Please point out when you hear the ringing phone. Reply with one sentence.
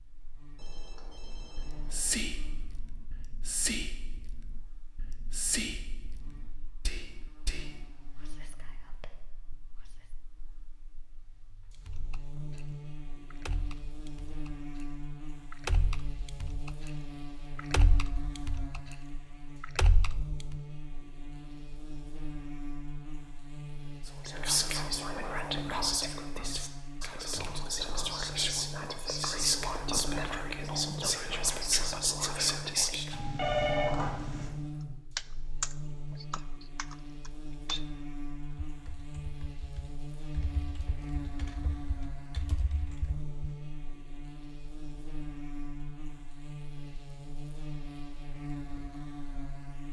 The ringing phone can be heard from 0.6 to 2.2 s and from 33.1 to 34.5 s.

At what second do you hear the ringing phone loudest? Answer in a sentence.
The loudest moment of the ringing phone is at 34 seconds.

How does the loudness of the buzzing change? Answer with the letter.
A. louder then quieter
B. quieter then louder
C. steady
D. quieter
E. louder
E.